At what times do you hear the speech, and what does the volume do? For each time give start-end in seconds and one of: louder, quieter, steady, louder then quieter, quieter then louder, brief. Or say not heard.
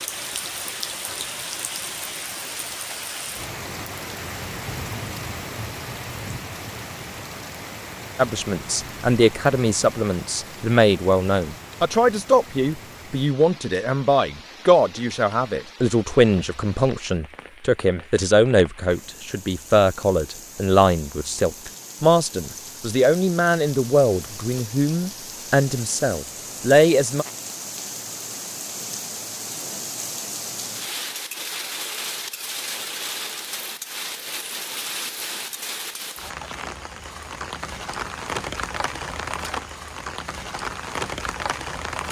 8.2-27.2 steady.